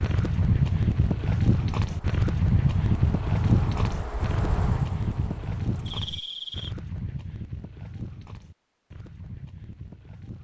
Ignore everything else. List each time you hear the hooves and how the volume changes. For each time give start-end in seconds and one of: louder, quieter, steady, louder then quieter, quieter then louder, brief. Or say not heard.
0.0-10.3 quieter.